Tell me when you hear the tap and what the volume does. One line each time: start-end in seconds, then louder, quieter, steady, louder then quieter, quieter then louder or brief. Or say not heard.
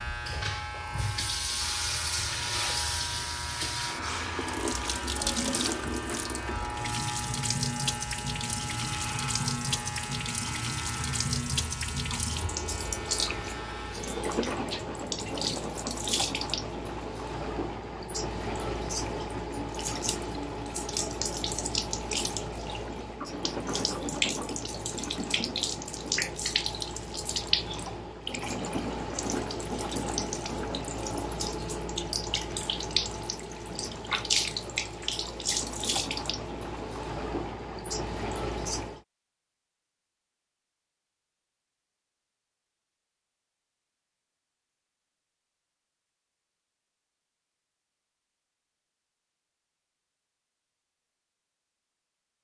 0.1-39.0 steady.